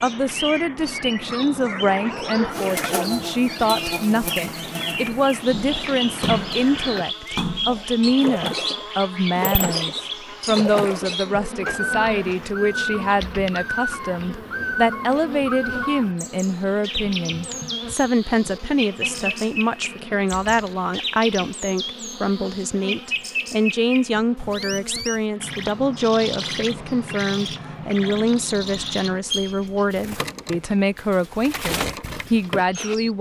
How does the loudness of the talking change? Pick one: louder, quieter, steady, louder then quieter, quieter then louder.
steady.